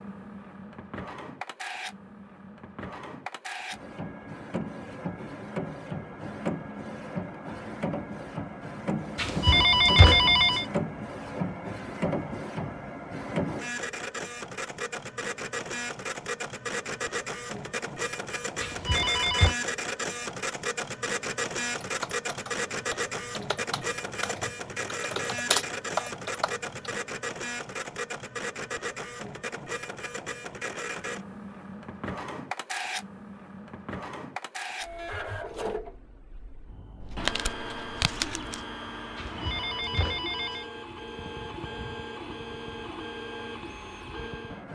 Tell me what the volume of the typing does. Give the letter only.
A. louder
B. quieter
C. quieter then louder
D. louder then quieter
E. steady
A.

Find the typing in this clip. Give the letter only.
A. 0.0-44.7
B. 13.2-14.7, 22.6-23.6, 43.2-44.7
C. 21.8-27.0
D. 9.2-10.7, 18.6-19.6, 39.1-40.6
C.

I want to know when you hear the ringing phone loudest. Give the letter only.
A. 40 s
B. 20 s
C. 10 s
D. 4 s
C.